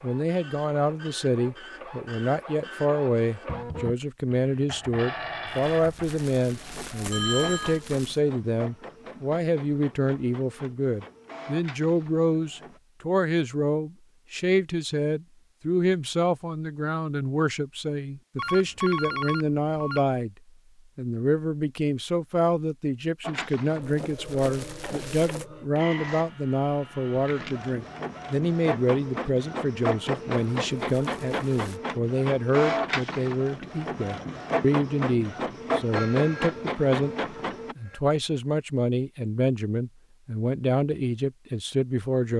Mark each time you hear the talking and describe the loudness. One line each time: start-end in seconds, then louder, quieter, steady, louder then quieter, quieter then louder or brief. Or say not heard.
0.0-20.4 steady
20.9-42.3 steady.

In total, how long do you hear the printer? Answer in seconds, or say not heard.
27 s.